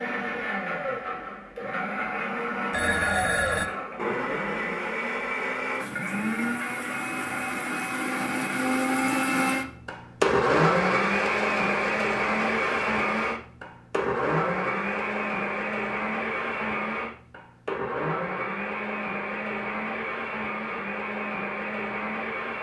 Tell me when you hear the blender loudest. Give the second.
11 s.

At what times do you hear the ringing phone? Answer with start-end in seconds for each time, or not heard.
2.7-3.7.